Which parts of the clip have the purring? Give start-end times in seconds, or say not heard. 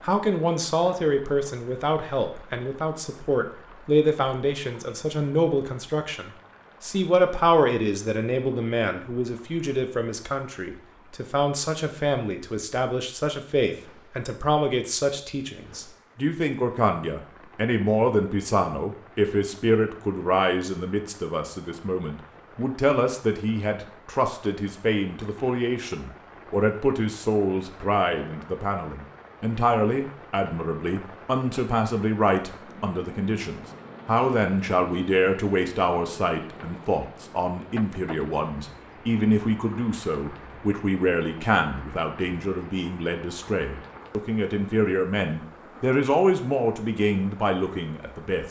not heard.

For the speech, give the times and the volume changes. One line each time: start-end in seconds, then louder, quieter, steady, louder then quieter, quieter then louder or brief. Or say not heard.
0.0-48.4 steady.